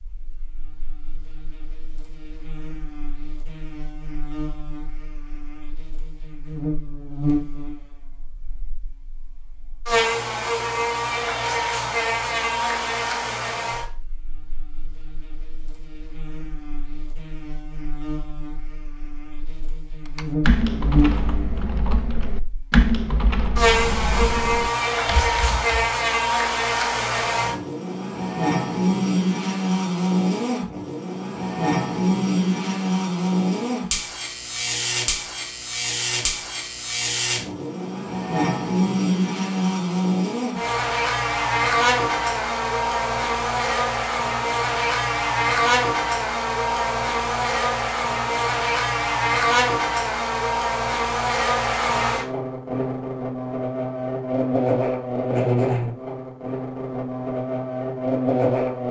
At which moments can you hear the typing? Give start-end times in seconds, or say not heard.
20.1-25.6.